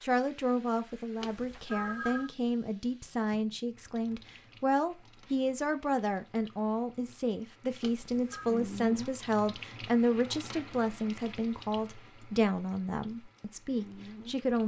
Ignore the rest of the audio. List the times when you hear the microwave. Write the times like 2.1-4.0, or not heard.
not heard.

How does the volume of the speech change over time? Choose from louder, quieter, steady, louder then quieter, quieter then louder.
steady.